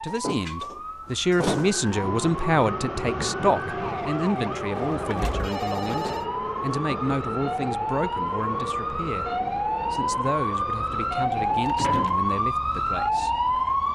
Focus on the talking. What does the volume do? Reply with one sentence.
The volume of the talking goes down.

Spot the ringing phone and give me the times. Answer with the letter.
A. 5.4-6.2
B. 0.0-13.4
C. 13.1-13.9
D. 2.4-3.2
A.